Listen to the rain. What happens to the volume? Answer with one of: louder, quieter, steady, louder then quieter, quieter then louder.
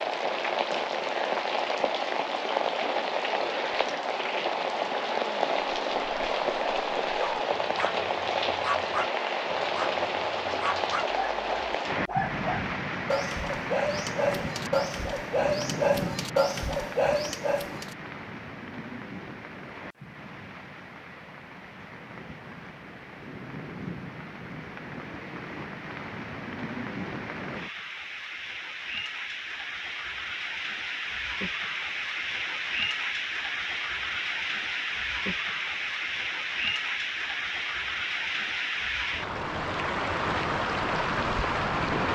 quieter then louder.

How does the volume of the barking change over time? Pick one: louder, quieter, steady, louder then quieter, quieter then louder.
louder.